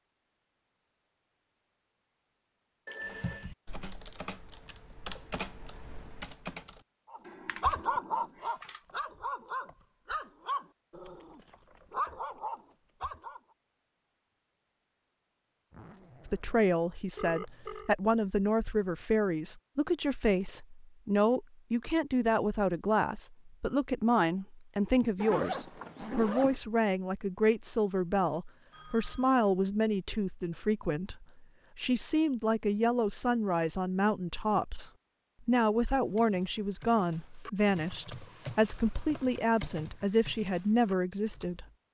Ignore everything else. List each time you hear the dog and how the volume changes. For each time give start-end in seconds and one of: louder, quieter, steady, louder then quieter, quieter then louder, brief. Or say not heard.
7.1-13.4 quieter then louder.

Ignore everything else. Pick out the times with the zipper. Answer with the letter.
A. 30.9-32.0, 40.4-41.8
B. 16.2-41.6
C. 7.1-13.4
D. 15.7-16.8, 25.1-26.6
D.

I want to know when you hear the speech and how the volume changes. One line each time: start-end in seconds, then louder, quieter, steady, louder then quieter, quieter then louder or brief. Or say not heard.
16.2-41.6 steady.